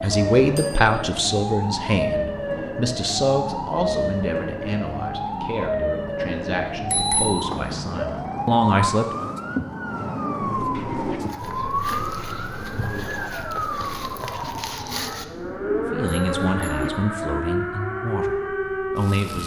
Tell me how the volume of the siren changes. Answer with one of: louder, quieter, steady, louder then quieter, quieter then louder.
steady.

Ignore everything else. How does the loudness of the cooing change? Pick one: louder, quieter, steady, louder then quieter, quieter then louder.
quieter then louder.